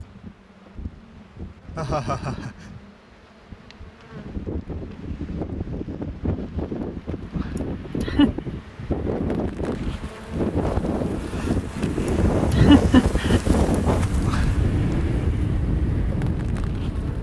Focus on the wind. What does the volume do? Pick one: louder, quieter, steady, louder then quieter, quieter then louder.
louder.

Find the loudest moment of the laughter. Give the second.
13 s.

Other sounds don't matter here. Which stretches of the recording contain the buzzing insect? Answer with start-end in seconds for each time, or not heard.
0.0-17.1.